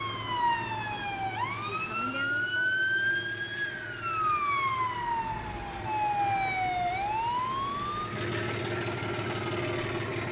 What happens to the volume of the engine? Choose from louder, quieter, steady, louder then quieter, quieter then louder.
louder.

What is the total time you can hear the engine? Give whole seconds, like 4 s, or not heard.
10 s.